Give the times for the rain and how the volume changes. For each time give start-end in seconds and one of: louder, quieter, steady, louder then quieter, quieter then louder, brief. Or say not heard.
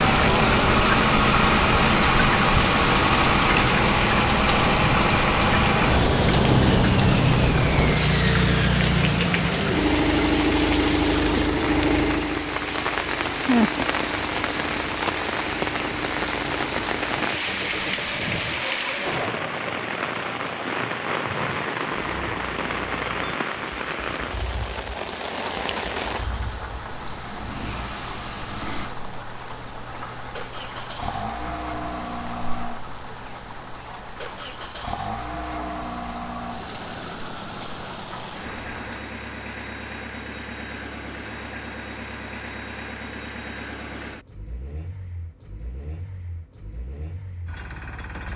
0.0-39.0 quieter.